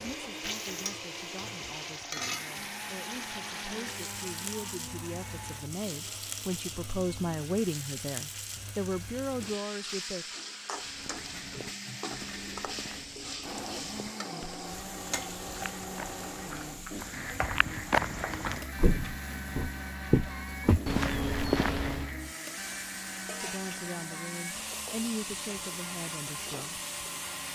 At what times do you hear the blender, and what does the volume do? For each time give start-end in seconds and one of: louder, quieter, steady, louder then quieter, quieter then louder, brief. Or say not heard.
0.0-27.4 quieter then louder.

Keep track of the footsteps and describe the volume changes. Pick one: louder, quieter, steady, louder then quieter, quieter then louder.
louder.